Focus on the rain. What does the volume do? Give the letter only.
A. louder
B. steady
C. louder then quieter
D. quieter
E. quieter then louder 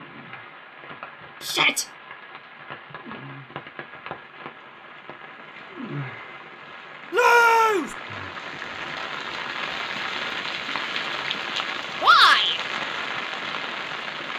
A.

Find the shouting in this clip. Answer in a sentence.
The shouting can be heard from 1.4 to 1.9 s, from 7.1 to 8.0 s and from 12.0 to 12.6 s.